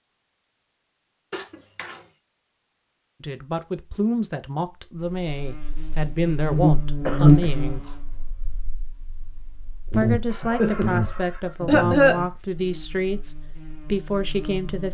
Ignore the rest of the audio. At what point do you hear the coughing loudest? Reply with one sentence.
The volume of the coughing peaks at 12 seconds.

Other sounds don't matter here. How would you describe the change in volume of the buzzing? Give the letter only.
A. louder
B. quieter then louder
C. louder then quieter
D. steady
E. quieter
C.